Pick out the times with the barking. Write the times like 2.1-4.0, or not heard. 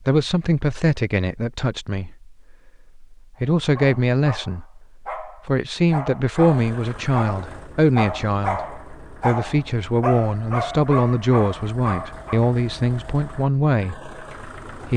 3.5-12.5.